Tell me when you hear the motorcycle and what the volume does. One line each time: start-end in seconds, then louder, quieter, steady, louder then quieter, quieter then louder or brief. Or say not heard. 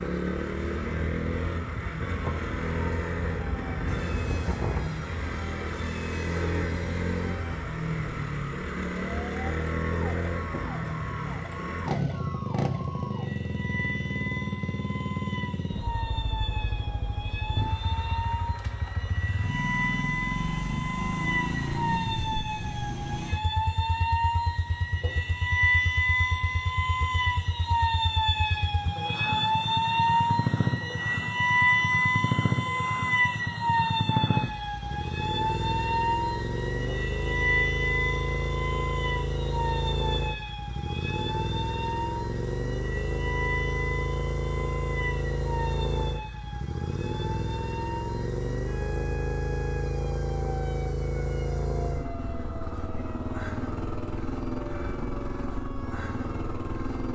0.0-57.1 steady.